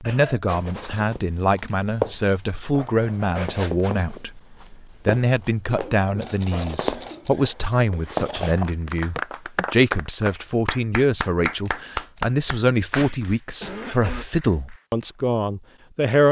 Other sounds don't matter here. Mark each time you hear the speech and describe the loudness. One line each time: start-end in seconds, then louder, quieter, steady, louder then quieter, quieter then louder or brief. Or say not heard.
0.0-16.2 steady.